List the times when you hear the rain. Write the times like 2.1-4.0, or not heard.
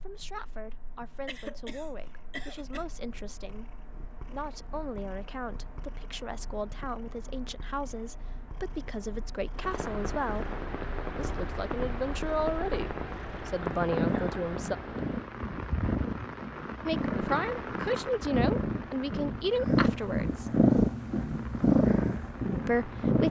9.5-23.2.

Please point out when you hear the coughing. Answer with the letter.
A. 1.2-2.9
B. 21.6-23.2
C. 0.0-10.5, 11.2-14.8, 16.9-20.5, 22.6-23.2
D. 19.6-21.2
A.